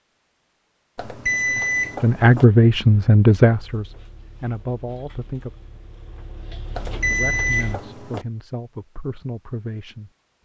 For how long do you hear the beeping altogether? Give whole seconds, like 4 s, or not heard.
3 s.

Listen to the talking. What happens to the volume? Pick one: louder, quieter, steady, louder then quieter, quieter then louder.
quieter.